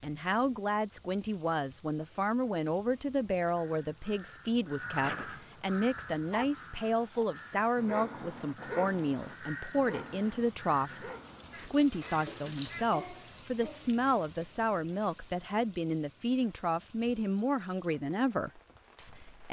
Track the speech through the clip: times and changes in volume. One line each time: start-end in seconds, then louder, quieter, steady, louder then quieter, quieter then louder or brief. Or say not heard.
0.0-19.4 steady.